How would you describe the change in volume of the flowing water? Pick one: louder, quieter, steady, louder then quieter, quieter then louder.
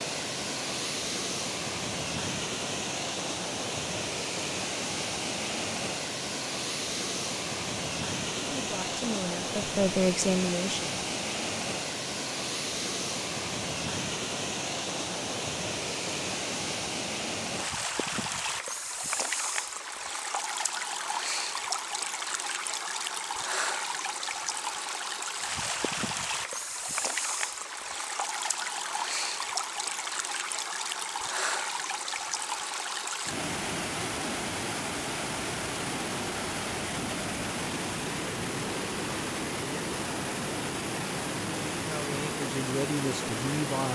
steady.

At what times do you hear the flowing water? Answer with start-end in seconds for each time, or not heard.
0.0-43.8.